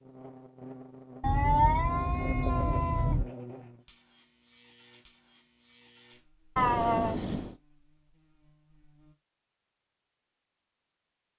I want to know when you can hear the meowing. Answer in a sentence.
You can hear the meowing from 1.2 to 3.2 s and from 6.5 to 7.5 s.